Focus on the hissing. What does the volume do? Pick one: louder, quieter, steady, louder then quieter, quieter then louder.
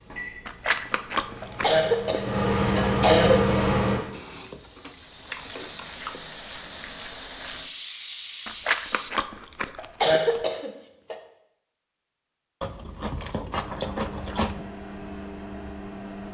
louder.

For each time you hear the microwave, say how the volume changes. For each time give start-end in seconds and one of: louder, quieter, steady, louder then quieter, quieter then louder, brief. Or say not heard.
0.0-4.0 louder
13.6-16.2 brief.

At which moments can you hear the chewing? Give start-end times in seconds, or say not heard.
0.5-2.2, 4.1-6.2, 8.4-10.4, 12.6-14.7.